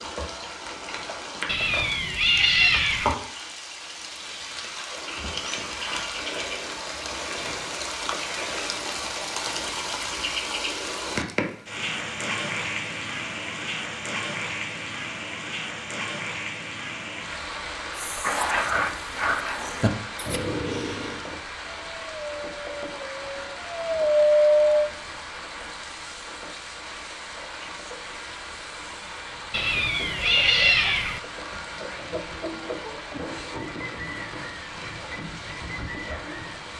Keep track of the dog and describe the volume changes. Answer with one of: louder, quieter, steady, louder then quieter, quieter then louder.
quieter then louder.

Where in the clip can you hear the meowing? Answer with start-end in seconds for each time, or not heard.
1.4-3.1, 29.5-31.2.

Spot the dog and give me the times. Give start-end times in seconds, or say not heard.
17.9-24.9.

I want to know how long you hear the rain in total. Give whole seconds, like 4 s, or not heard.
37 s.